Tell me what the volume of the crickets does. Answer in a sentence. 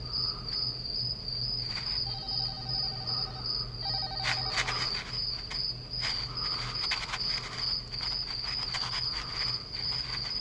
The volume of the crickets stays about the same.